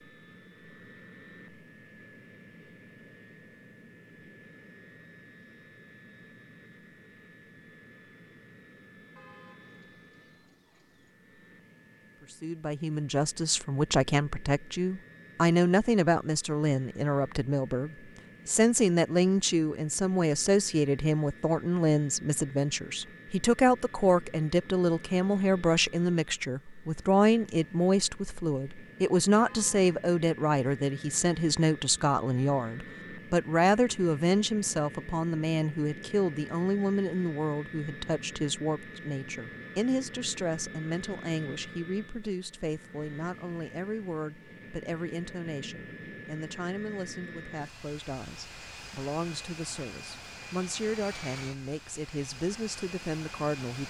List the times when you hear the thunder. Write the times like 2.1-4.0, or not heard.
not heard.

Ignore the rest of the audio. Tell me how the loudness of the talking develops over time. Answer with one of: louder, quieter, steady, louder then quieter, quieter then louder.
quieter.